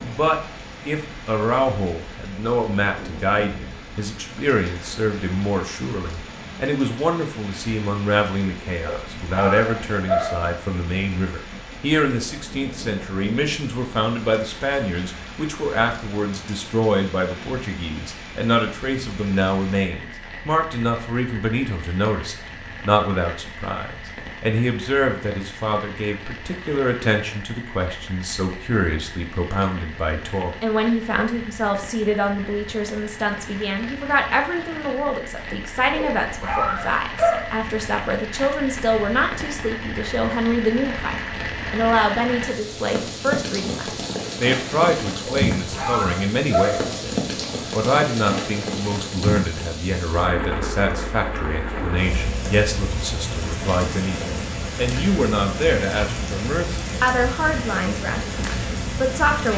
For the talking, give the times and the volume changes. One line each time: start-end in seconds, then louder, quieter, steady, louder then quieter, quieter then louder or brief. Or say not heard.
0.0-59.5 steady.